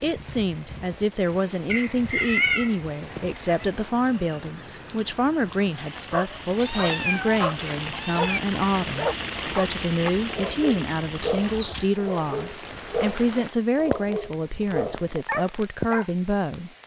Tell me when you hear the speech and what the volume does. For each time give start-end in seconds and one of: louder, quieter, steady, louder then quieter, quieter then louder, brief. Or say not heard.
0.0-16.7 steady.